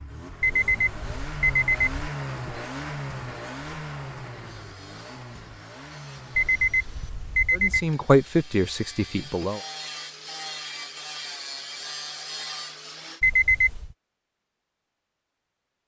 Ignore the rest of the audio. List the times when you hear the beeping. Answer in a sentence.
The beeping can be heard from 0.4 to 2.0 s, from 6.3 to 7.8 s and from 13.2 to 13.9 s.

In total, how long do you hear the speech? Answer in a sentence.
The speech can be heard for 2 seconds in total.